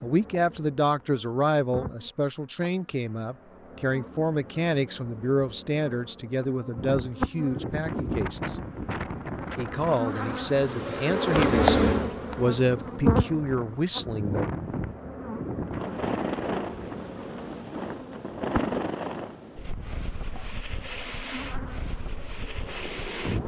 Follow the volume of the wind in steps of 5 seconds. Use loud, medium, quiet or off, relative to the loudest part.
off, loud, loud, loud, medium.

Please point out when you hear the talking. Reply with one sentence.
The talking can be heard from 0.0 to 8.6 s and from 9.6 to 14.4 s.